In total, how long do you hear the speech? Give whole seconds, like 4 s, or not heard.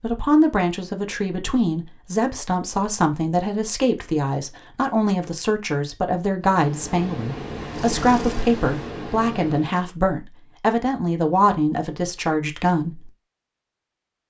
13 s.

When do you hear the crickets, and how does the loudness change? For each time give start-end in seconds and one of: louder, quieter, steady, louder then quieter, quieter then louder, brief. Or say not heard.
not heard.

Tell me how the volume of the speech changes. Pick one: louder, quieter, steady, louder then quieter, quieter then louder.
steady.